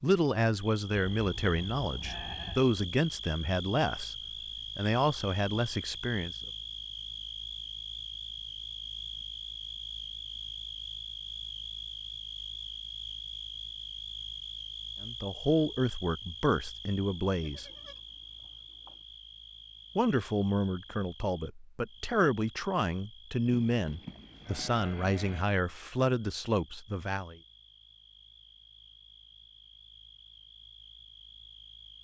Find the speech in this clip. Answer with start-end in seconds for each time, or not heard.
0.0-4.2, 4.8-6.3, 15.0-17.6, 19.9-27.4.